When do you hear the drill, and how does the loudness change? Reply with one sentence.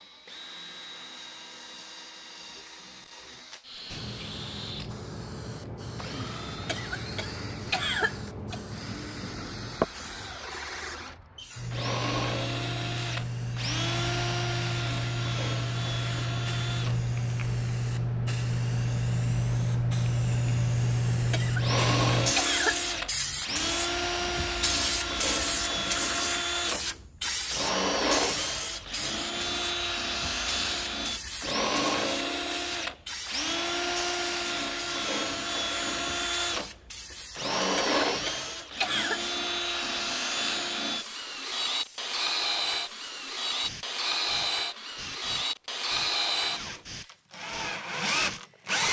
The drill can be heard from 0.0 to 17.1 s, getting louder; and from 21.6 to 48.8 s, at a steady volume.